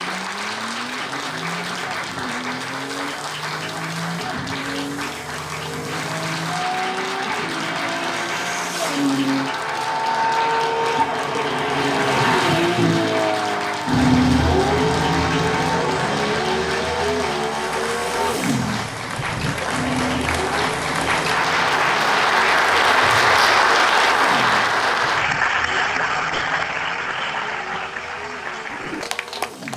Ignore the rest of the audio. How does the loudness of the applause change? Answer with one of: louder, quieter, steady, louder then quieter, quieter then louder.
louder.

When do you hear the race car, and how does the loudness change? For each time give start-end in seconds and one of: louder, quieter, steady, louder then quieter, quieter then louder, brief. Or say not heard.
0.0-29.7 louder then quieter.